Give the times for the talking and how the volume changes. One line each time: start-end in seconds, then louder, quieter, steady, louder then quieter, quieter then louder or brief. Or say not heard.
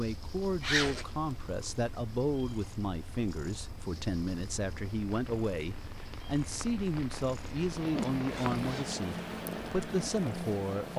0.0-10.9 steady.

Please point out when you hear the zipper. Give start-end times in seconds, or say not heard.
0.6-1.4, 7.8-8.9.